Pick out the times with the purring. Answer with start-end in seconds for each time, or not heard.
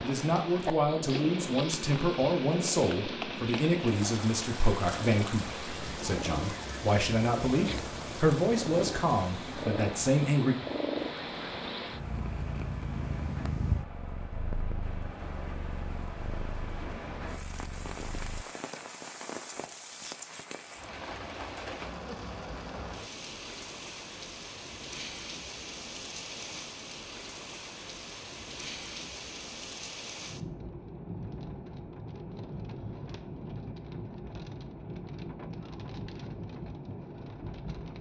0.0-18.4.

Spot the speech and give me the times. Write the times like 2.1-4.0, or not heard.
0.0-10.6.